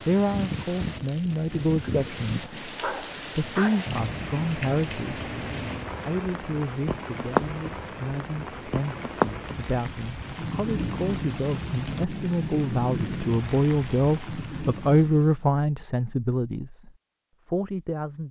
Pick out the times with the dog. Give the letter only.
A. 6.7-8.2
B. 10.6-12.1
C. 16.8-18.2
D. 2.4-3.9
D.